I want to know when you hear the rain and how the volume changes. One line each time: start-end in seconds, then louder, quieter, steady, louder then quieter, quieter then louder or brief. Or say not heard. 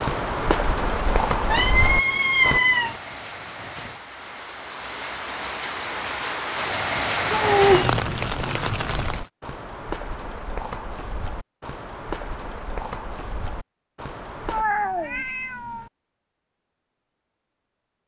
0.1-9.3 louder.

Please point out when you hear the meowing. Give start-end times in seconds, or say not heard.
1.5-3.0, 7.3-8.0, 14.4-15.9.